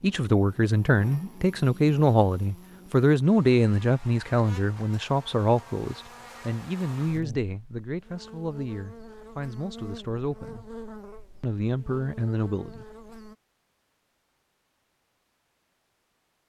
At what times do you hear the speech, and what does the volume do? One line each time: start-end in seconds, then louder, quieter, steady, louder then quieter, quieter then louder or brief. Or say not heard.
0.0-10.7 quieter
11.4-12.8 brief.